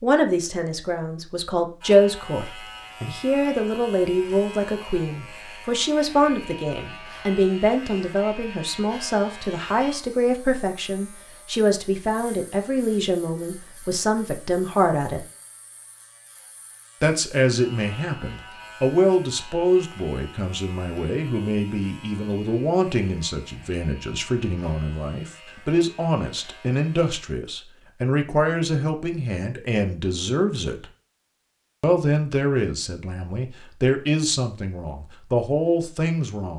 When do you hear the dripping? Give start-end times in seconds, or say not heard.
not heard.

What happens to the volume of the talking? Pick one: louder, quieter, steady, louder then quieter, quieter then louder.
steady.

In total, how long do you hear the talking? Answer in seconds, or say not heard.
34 s.